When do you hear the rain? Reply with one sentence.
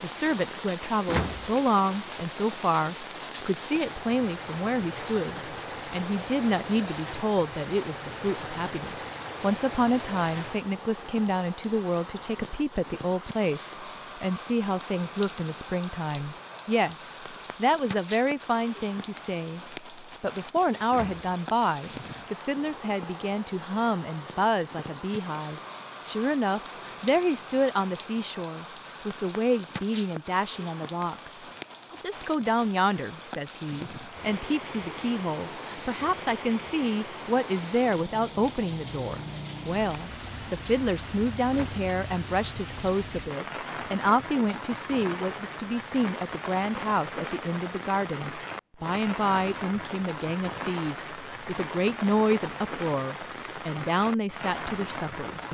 You can hear the rain from 0.0 to 55.4 s.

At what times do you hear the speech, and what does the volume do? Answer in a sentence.
You can hear the speech from 0.0 to 55.4 s, at a steady volume.